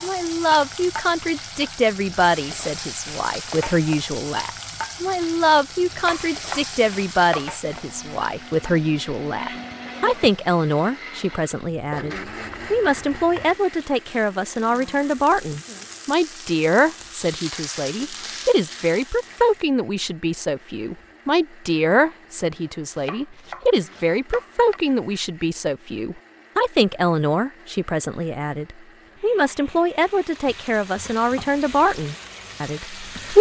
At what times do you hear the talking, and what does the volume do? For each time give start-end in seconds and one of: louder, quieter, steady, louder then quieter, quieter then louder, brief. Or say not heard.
0.0-33.3 steady.